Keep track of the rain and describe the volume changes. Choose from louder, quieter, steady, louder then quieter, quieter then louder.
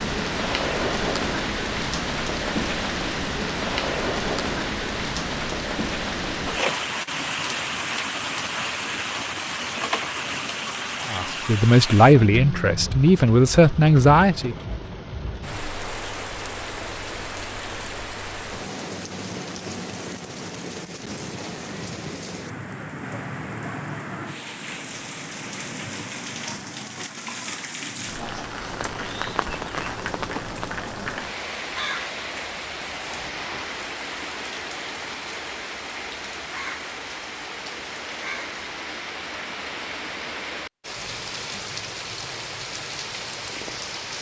quieter.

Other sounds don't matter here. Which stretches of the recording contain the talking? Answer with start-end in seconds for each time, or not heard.
11.1-14.6.